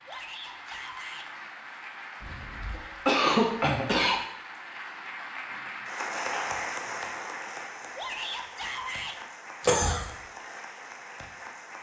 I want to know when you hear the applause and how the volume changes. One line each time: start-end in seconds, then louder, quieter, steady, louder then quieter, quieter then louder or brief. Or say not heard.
0.0-11.7 louder then quieter.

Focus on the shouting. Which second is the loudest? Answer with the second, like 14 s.
8 s.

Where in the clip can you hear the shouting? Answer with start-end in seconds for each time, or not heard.
0.1-1.2, 8.0-9.2.